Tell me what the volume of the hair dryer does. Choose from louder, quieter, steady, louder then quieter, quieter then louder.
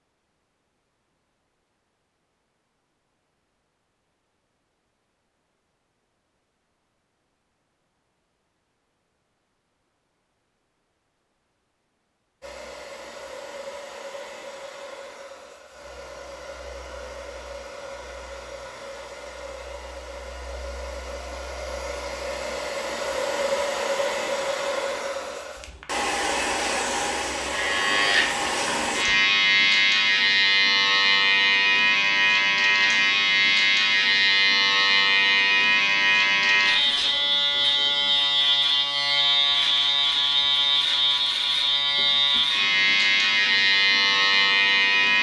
louder.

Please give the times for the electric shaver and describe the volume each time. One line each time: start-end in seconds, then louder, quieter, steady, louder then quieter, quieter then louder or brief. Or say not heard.
27.5-45.1 steady.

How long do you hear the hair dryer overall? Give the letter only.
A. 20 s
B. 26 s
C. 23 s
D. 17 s
D.